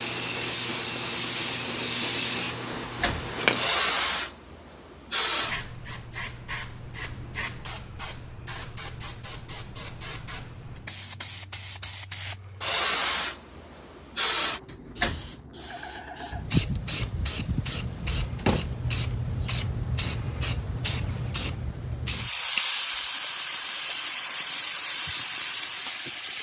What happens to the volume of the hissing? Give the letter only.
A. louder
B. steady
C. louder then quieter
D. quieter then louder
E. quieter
D.